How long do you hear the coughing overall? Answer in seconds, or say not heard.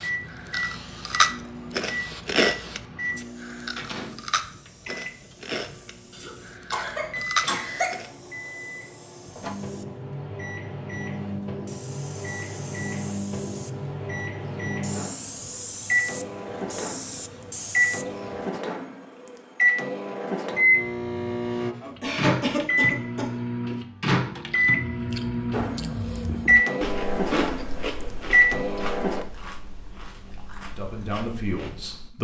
3 s.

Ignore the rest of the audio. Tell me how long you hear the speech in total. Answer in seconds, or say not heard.
2 s.